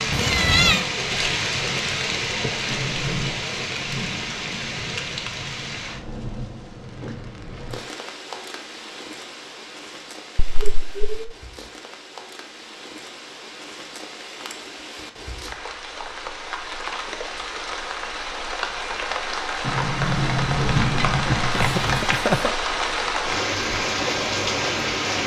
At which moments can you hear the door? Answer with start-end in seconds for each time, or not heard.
2.6-3.5, 19.6-22.1.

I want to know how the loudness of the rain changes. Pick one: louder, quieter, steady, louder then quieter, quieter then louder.
quieter then louder.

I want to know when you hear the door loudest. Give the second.
21 s.